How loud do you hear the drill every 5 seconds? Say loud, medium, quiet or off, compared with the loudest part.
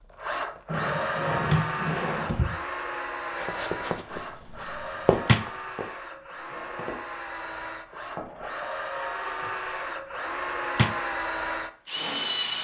loud, medium, loud.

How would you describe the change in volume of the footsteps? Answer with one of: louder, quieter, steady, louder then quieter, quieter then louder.
louder then quieter.